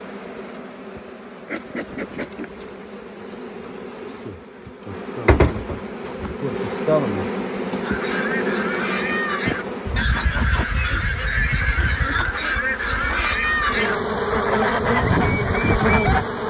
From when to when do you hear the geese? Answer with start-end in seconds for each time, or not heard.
7.8-16.2.